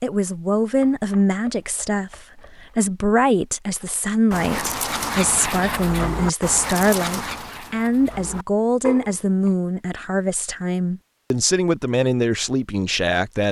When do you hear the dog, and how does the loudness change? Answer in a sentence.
You can hear the dog from 4.3 to 9.5 s, getting quieter then louder.